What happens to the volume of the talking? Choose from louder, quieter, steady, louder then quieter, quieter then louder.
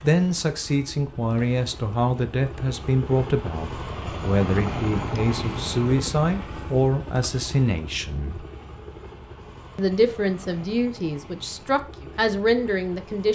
steady.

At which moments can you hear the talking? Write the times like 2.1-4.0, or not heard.
0.0-8.4, 9.8-13.2.